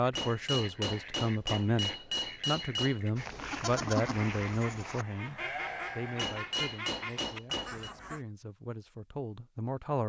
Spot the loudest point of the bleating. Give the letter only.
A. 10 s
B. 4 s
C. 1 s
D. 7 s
B.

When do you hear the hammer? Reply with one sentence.
The hammer can be heard from 0.1 to 3.1 s and from 6.2 to 7.9 s.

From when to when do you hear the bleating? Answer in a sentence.
You can hear the bleating from 3.1 to 6.4 s.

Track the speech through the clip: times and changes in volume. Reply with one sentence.
The speech can be heard from 0.0 to 10.0 s, getting quieter.